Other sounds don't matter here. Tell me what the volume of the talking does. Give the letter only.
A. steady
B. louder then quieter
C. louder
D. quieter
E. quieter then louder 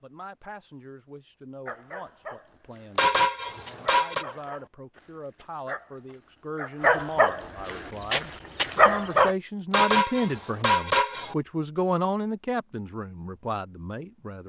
C.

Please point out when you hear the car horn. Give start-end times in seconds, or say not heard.
3.0-4.2, 9.7-11.3.